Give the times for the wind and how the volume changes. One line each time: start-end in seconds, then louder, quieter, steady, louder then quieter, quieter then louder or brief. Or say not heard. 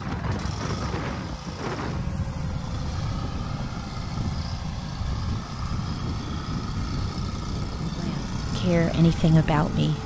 0.0-10.0 steady.